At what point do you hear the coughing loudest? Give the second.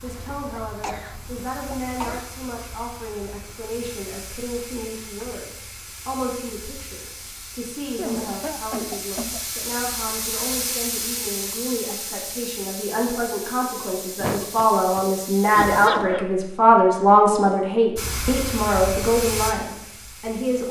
16 s.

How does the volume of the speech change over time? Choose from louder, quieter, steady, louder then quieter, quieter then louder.
louder.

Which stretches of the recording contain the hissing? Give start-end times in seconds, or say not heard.
0.0-15.9, 17.9-20.6.